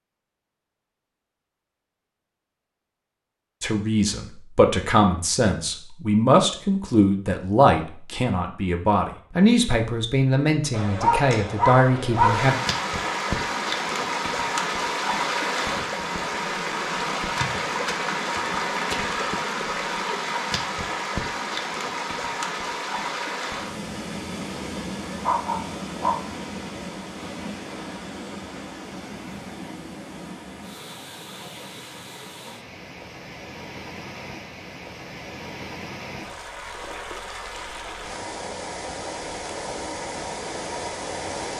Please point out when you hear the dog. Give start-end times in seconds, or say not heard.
10.7-12.6, 25.2-26.2.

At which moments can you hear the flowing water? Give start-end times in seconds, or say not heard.
12.1-41.5.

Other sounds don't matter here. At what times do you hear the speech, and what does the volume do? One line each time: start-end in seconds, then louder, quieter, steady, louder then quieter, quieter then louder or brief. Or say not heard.
3.6-12.6 steady.